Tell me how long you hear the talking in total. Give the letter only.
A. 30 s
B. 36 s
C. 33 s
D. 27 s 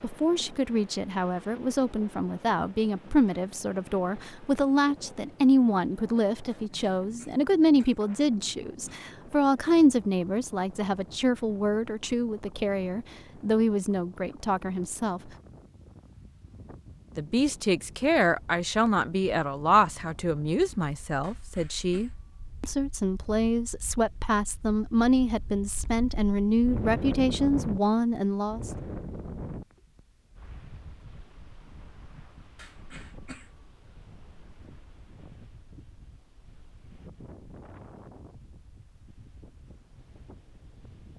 D.